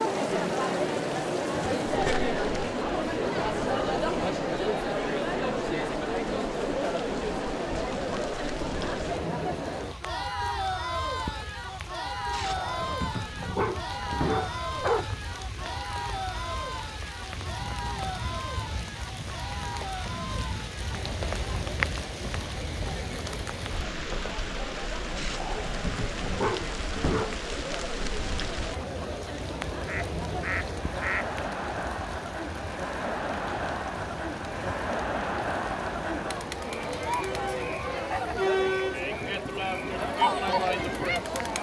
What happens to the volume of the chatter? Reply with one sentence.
The loudness of the chatter goes down, then up.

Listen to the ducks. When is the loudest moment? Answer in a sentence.
The loudest moment of the ducks is at 31 seconds.